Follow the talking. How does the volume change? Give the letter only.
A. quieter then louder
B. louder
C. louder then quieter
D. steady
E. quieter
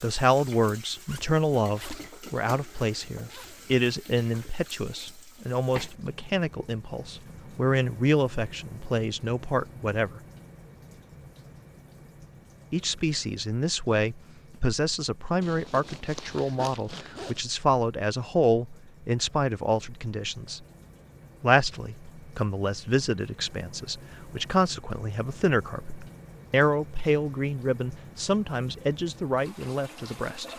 D.